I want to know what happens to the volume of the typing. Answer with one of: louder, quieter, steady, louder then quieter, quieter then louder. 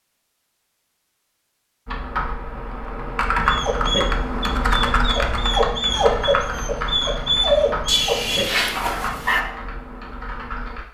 quieter.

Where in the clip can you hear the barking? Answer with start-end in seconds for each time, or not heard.
3.5-9.6.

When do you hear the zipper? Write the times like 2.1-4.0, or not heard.
7.8-9.4.